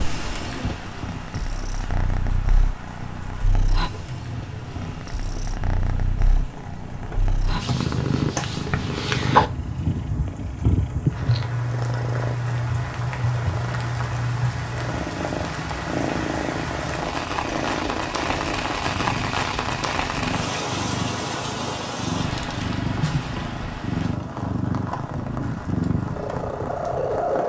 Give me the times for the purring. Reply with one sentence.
You can hear the purring from 0.0 to 27.4 s.